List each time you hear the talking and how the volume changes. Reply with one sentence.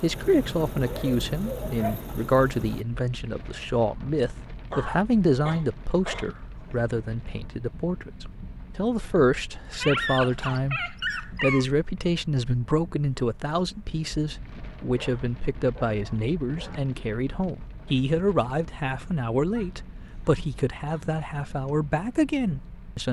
You can hear the talking from 0.0 to 23.0 s, at a steady volume.